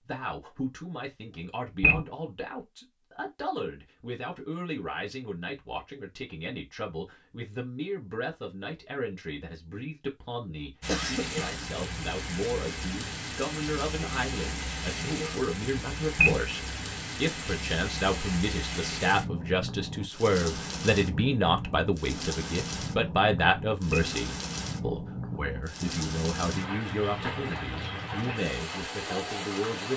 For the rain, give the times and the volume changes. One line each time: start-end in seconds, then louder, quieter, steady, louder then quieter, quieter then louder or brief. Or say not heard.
10.8-29.9 steady.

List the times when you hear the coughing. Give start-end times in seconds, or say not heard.
10.8-11.6.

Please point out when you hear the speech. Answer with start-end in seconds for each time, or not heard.
0.0-29.9.